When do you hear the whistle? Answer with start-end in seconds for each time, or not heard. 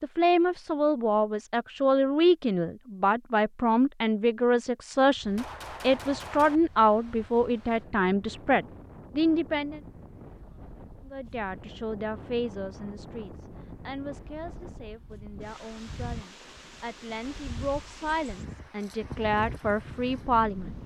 not heard.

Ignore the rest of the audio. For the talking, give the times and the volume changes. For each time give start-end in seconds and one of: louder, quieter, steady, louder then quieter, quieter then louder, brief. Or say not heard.
0.0-9.8 steady
11.1-20.8 quieter then louder.